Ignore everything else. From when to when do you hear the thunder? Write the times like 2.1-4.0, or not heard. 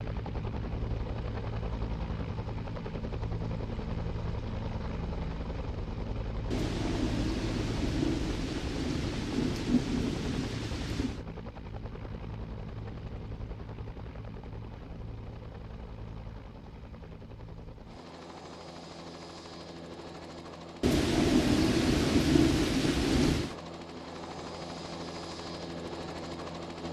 6.5-11.2, 20.8-23.6.